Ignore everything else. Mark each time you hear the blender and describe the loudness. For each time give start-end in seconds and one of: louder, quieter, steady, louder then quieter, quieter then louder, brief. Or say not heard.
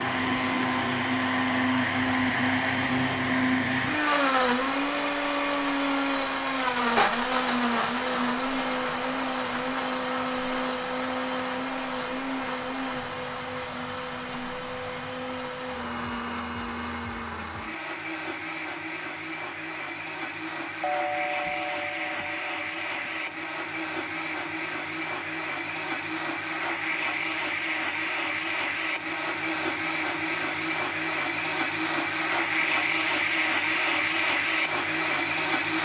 0.0-35.8 quieter then louder.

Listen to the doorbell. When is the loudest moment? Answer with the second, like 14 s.
21 s.